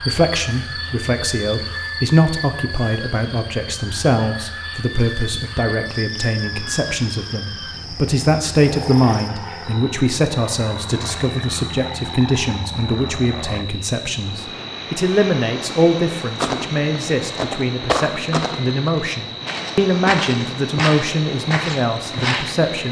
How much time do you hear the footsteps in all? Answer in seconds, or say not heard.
6 s.